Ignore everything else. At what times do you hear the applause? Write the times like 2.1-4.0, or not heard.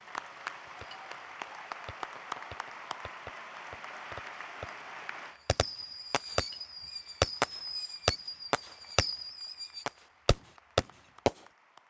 0.0-11.8.